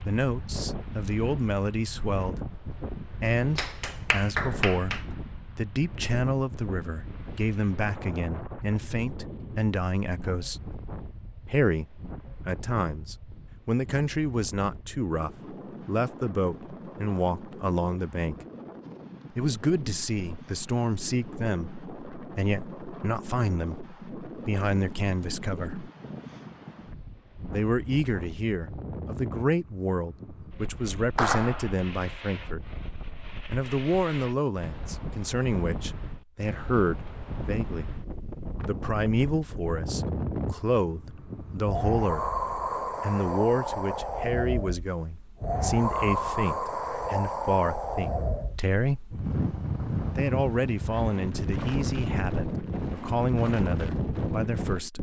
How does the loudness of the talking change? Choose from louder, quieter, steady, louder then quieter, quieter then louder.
steady.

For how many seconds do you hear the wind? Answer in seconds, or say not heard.
55 s.